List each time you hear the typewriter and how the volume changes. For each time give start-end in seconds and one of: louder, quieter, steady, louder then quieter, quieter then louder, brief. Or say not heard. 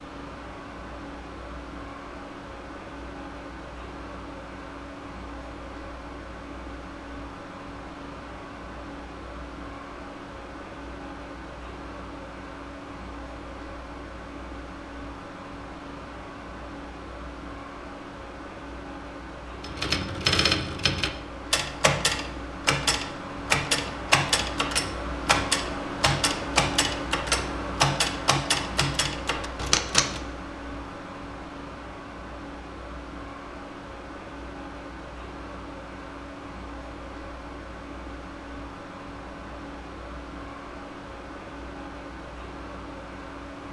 19.6-30.2 steady.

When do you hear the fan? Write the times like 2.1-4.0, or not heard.
0.0-43.6.